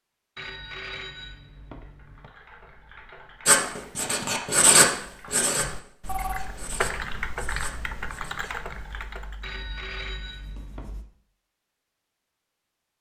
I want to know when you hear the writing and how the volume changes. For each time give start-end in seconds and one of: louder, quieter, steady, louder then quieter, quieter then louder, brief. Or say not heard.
3.5-11.1 quieter.